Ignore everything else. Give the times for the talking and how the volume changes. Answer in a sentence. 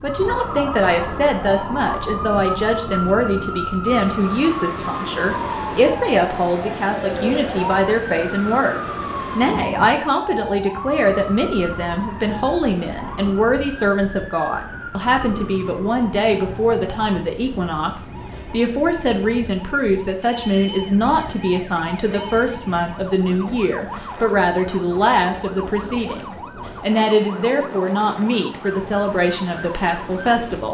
The talking can be heard from 0.0 to 30.6 s, at a steady volume.